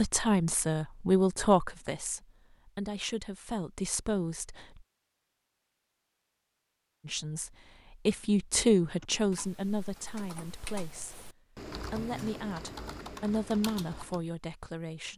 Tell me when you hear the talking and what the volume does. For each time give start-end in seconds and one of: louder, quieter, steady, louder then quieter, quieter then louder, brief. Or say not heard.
0.0-4.7 quieter then louder
7.0-15.1 quieter then louder.